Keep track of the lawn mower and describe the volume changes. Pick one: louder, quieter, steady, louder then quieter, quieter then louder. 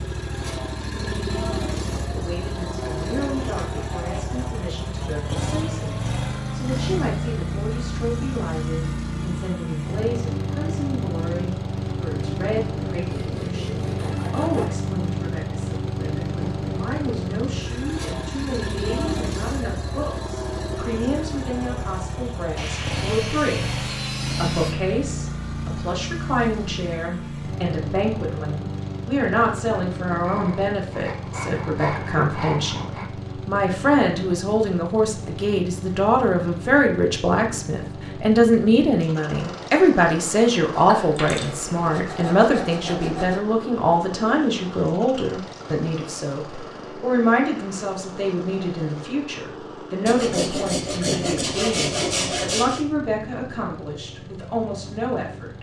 quieter.